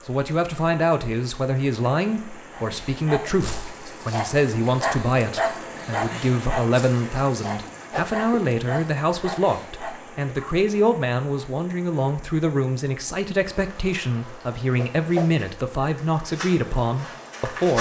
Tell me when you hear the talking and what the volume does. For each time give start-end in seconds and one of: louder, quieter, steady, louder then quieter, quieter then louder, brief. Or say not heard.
0.1-17.7 steady.